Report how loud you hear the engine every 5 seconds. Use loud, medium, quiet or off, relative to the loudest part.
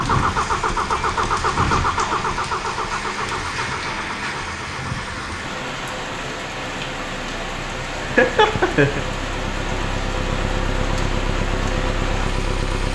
loud, medium, loud.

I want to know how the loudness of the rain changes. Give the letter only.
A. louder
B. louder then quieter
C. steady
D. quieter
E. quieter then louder
C.